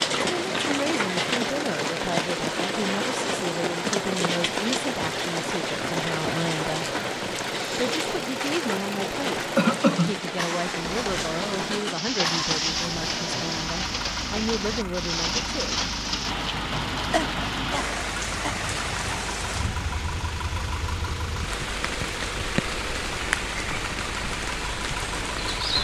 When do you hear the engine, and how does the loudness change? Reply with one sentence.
You can hear the engine from 0.0 to 25.7 s, at a steady volume.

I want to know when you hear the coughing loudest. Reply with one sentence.
The loudest moment of the coughing is at 10 seconds.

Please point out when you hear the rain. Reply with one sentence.
You can hear the rain from 0.0 to 25.7 s.